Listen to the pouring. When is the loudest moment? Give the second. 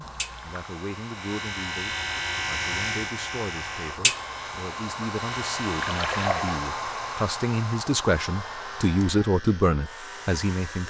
6 s.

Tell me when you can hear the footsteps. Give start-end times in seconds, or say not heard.
not heard.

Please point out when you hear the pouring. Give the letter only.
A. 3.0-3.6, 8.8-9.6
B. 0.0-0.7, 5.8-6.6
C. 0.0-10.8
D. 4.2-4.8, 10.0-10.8
B.